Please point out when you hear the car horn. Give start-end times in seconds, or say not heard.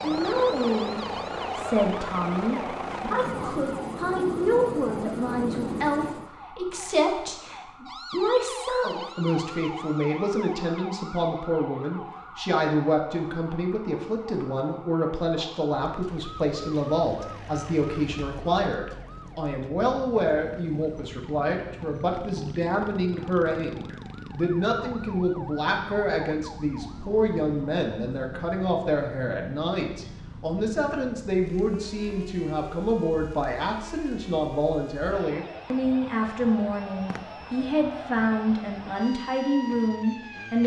not heard.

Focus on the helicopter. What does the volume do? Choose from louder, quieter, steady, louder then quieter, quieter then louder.
steady.